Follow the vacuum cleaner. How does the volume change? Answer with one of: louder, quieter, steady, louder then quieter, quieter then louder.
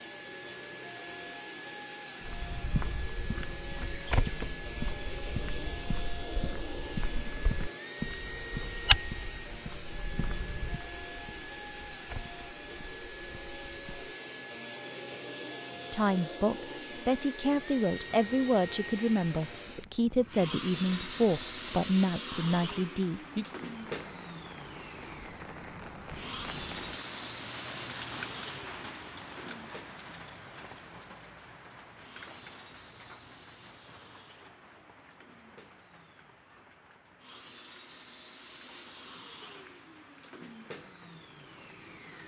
quieter.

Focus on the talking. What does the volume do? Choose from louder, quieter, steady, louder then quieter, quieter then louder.
steady.